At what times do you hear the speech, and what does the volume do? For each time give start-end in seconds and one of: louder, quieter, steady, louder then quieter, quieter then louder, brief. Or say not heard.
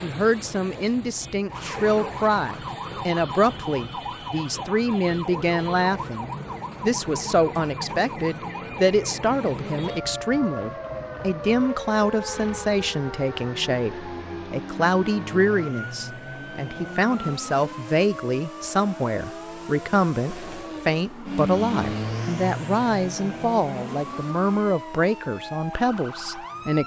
0.0-26.8 steady.